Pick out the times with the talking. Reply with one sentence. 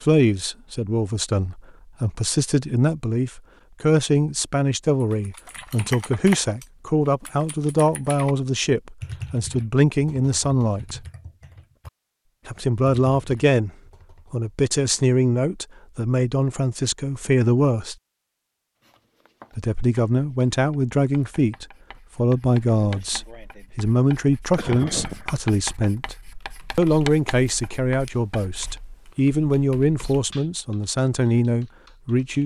You can hear the talking from 0.0 to 11.1 s, from 12.4 to 13.7 s, from 14.3 to 17.9 s, from 19.6 to 26.1 s and from 26.8 to 32.4 s.